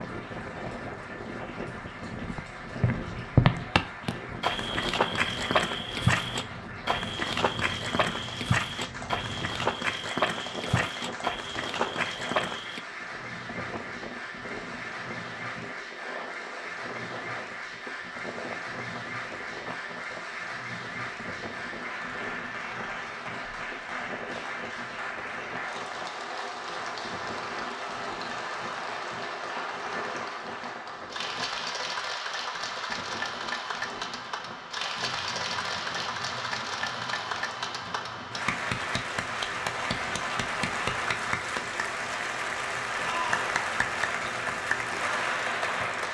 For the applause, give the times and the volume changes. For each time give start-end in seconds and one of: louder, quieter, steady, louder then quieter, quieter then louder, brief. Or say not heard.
0.0-46.1 louder.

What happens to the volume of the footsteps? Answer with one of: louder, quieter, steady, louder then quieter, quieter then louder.
quieter.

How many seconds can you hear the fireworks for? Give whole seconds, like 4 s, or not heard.
not heard.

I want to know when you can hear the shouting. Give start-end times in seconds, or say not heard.
43.0-43.5.